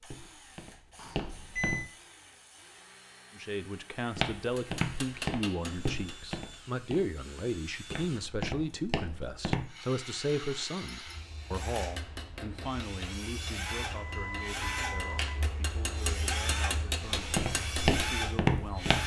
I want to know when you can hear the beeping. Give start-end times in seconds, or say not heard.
0.9-1.9, 13.8-15.4.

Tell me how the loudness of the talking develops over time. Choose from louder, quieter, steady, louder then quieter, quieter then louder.
quieter.